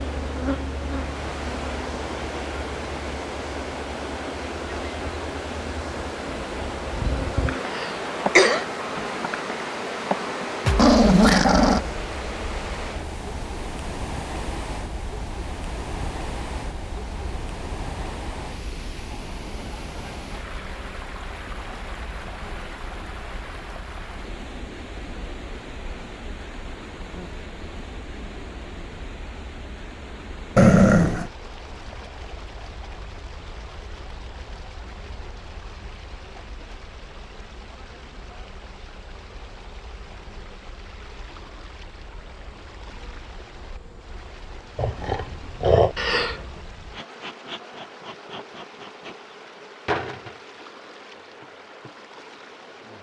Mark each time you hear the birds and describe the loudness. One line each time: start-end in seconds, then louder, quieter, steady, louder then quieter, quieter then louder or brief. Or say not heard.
not heard.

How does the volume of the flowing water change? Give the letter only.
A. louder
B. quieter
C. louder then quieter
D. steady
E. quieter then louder
B.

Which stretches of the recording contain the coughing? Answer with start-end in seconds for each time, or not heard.
7.7-8.7, 46.0-46.6.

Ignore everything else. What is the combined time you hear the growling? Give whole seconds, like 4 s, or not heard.
3 s.